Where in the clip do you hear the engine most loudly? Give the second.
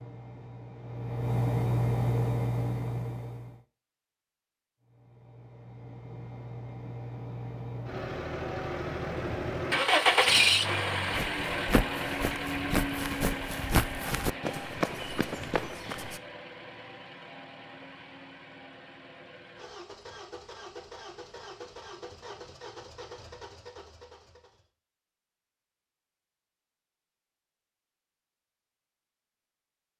10 s.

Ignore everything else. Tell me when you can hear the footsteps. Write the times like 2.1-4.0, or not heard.
11.1-16.2.